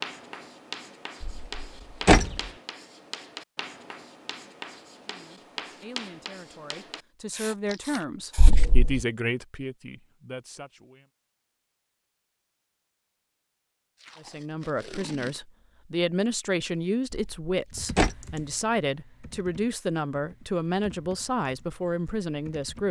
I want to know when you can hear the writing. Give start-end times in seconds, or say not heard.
0.0-8.6.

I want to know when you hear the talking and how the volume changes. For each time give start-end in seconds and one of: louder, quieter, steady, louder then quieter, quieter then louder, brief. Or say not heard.
5.0-11.1 louder then quieter
14.2-22.8 steady.